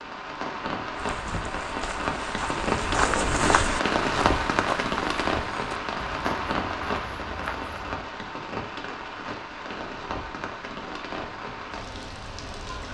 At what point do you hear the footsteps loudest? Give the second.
3 s.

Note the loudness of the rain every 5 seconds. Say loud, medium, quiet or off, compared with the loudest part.
loud, loud, medium.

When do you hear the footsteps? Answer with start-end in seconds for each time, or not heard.
0.9-7.8.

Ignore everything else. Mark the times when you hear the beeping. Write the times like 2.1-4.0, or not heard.
not heard.